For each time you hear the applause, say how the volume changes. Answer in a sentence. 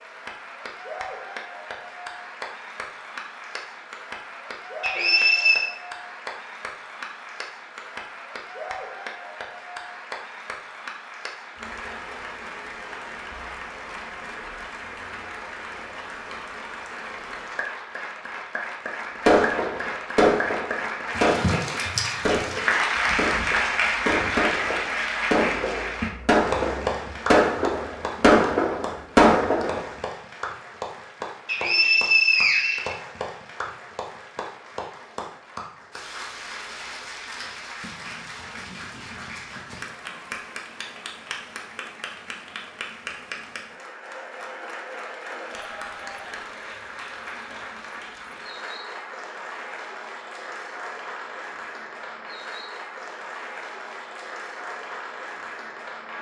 You can hear the applause from 0.0 to 56.1 s, getting louder then quieter.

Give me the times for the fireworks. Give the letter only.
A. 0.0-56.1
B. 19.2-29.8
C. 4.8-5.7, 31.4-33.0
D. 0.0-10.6
B.